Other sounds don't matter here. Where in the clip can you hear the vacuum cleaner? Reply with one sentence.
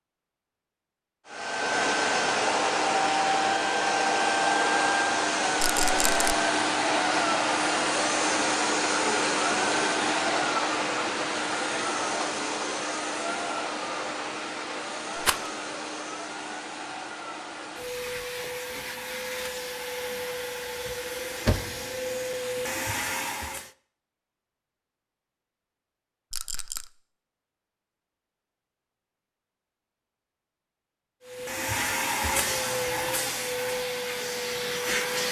You can hear the vacuum cleaner from 1.2 to 23.7 s and from 31.2 to 35.2 s.